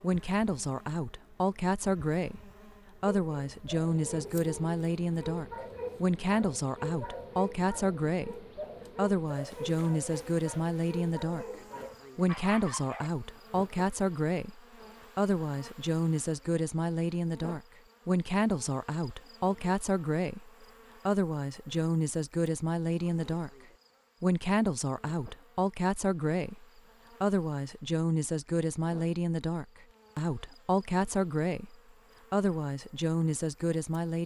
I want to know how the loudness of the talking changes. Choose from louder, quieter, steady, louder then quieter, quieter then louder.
steady.